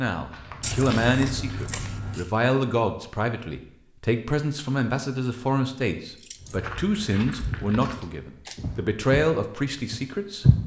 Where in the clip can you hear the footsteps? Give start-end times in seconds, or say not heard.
0.1-1.7, 6.3-10.6.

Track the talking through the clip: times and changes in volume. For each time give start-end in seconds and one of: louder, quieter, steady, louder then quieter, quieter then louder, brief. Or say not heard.
0.0-10.4 steady.